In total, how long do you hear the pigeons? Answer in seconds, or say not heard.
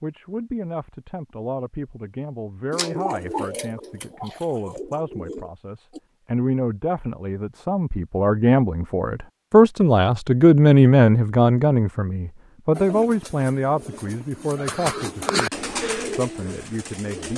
8 s.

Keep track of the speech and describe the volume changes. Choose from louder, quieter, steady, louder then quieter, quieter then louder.
louder then quieter.